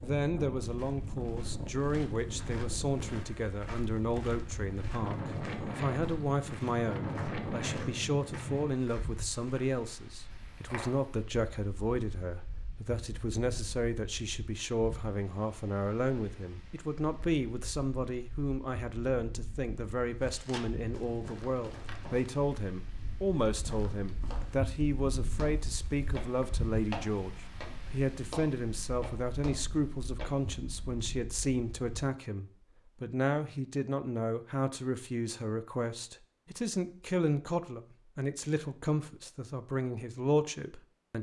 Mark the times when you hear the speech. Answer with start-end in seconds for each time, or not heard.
0.0-41.1.